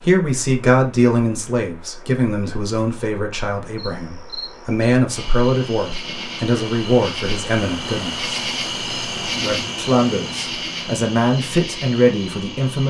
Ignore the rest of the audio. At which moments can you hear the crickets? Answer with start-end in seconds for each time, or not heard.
3.8-12.8.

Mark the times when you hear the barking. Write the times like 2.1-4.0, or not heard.
not heard.